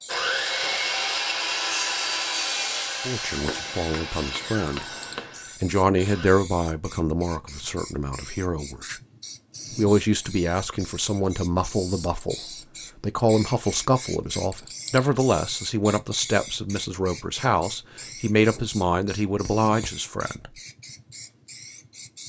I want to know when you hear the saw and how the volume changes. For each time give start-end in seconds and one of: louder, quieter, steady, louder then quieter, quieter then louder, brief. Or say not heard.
0.1-6.3 quieter.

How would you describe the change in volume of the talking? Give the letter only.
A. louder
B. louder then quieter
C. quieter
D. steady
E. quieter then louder
D.